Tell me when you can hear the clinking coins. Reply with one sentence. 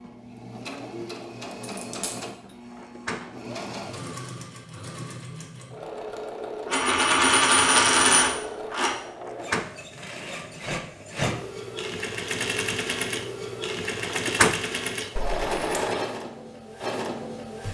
You can hear the clinking coins from 1.7 to 2.1 s, from 6.7 to 8.9 s and from 15.2 to 15.7 s.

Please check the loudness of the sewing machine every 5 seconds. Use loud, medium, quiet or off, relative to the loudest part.
medium, medium, loud, loud.